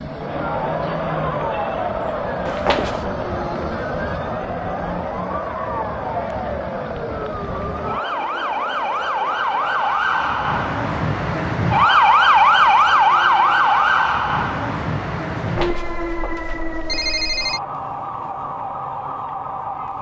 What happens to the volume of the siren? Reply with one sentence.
The loudness of the siren goes up, then down.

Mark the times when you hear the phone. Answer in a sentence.
The phone can be heard from 2.5 to 3.0 s and from 15.3 to 17.6 s.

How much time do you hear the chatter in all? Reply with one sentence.
The chatter can be heard for 20 seconds in total.